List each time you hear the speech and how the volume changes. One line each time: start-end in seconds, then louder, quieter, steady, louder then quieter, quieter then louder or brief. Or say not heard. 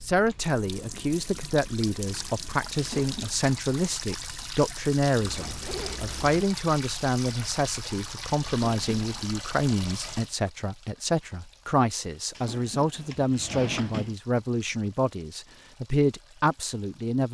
0.0-17.2 steady.